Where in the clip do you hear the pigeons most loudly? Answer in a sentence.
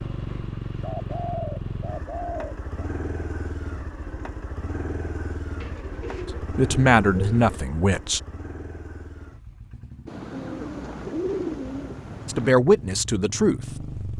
The volume of the pigeons peaks at 11 seconds.